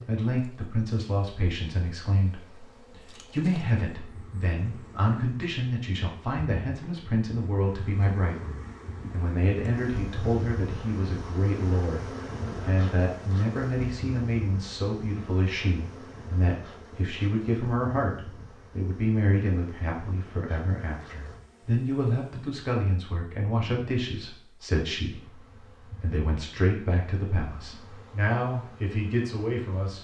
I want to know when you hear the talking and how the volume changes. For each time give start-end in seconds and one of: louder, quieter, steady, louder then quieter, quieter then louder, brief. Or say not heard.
0.1-29.9 steady.